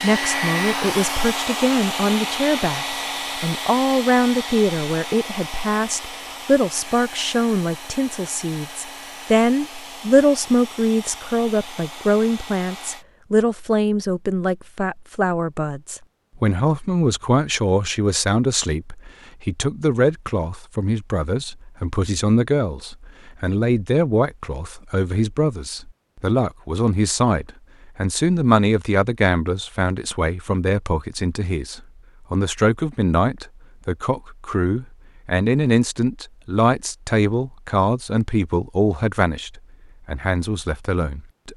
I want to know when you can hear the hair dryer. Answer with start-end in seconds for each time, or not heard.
0.0-13.1.